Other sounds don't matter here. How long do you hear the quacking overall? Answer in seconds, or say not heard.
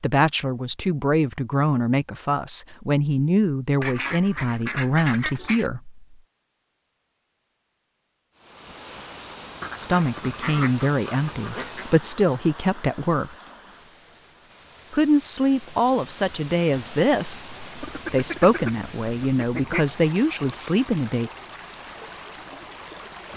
6 s.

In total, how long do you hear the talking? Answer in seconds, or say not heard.
16 s.